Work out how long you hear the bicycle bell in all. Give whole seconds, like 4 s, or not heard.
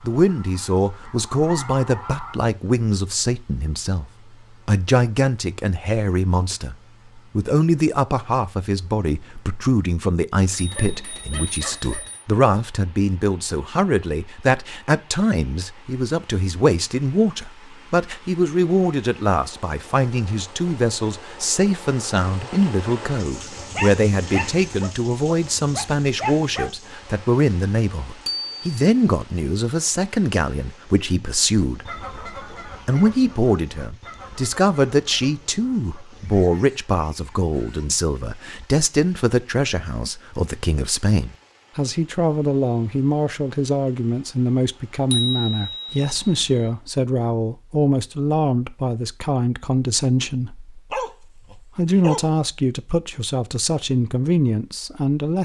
4 s.